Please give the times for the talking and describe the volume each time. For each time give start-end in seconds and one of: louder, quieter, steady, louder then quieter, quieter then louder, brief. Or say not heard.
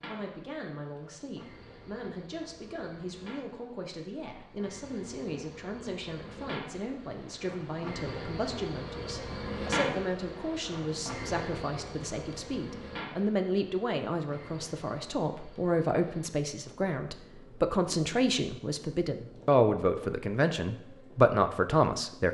0.1-22.2 louder.